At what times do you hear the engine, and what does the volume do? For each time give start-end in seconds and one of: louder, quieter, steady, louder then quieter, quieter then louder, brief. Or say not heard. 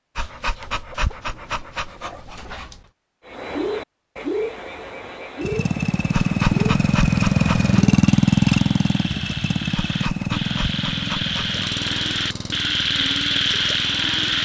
5.4-14.3 quieter.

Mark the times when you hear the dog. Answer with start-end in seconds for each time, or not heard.
0.1-2.8, 6.1-7.8, 9.8-11.6.